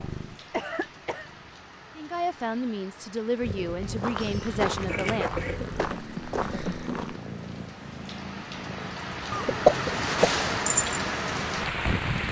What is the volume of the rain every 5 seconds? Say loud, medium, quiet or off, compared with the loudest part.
quiet, medium, loud.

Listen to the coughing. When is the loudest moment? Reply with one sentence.
The loudest moment of the coughing is at 10 seconds.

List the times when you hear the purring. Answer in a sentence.
The purring can be heard from 0.0 to 1.6 s and from 3.4 to 12.2 s.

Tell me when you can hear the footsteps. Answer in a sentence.
The footsteps can be heard from 3.8 to 7.2 s.